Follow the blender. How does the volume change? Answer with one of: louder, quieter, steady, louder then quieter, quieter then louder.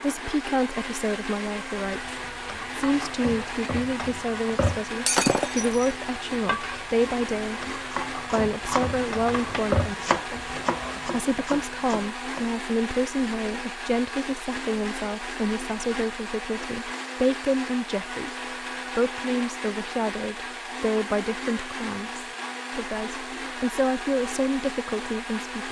steady.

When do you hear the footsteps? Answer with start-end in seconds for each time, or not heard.
not heard.